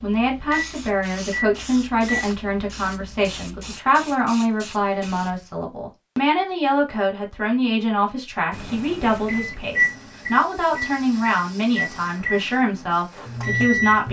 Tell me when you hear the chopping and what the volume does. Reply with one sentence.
You can't hear the chopping here.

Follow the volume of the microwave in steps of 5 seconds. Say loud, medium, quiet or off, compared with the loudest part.
medium, loud, loud.